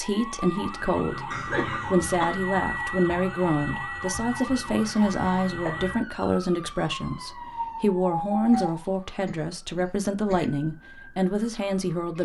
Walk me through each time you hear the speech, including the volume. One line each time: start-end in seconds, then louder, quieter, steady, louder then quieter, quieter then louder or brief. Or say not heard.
0.0-12.2 steady.